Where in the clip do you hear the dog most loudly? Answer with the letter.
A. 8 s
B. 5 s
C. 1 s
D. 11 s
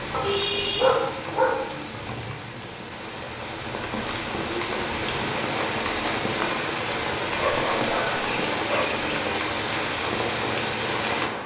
C.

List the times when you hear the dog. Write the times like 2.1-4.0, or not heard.
0.1-1.7, 7.3-9.0.